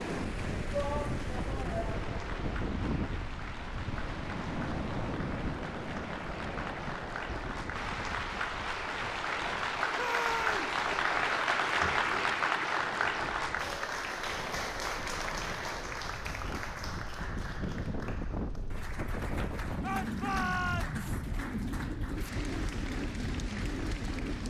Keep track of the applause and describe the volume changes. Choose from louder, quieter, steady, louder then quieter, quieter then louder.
louder then quieter.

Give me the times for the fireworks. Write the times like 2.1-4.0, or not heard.
not heard.